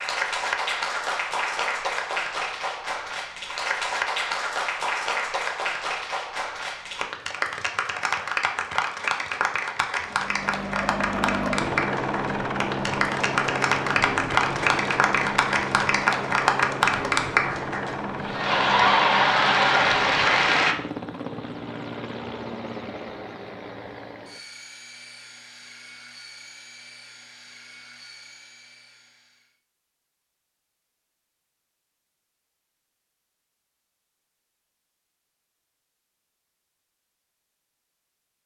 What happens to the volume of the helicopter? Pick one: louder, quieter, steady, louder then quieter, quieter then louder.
quieter.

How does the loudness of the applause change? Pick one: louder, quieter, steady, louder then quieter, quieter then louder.
louder.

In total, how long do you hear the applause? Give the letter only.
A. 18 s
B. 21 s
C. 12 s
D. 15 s
B.